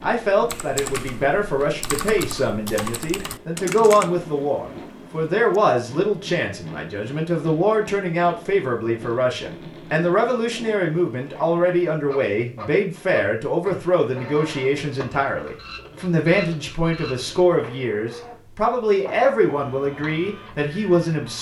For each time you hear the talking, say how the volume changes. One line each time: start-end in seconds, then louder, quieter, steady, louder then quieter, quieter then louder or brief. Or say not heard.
0.0-21.3 steady.